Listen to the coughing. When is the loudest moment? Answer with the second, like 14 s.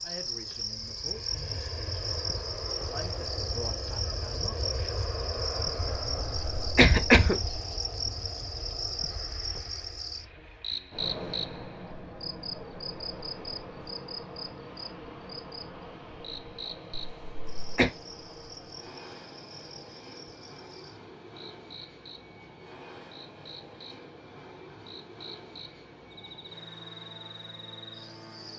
7 s.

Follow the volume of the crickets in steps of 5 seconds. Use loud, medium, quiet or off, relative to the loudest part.
loud, loud, loud, medium, quiet, medium.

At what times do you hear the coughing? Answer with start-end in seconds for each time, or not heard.
6.5-7.5, 16.9-17.9.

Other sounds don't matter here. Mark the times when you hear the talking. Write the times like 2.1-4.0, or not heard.
0.0-5.0.